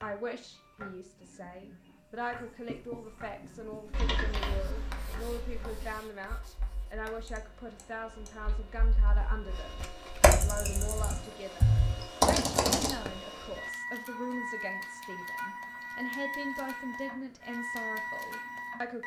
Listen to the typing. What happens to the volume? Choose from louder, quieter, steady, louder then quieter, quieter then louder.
quieter then louder.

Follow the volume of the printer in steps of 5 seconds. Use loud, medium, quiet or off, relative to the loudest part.
quiet, quiet, loud, loud.